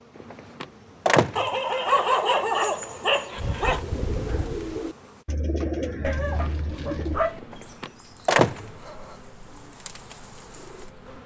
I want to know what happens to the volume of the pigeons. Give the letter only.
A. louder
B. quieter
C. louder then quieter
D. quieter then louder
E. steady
B.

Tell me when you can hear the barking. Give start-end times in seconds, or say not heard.
1.4-3.8, 6.0-7.4.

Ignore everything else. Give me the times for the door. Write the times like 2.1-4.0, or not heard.
0.2-1.5, 7.4-8.7.